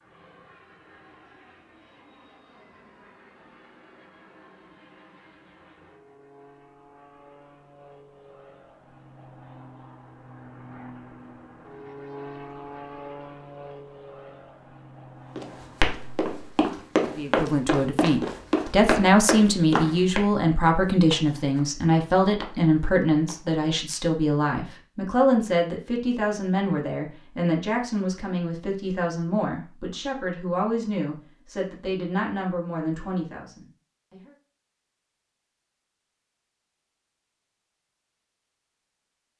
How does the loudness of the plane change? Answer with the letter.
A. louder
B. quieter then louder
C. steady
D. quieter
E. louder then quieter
A.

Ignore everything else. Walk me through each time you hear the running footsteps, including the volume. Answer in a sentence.
You can hear the running footsteps from 15.3 to 23.5 s, getting quieter.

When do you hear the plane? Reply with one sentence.
The plane can be heard from 0.0 to 16.2 s.